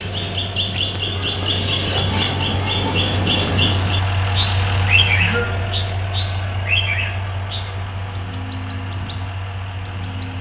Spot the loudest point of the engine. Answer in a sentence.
The volume of the engine peaks at 5 seconds.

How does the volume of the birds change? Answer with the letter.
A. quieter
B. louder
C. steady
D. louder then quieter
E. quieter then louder
A.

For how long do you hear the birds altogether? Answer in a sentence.
The birds can be heard for 10 seconds in total.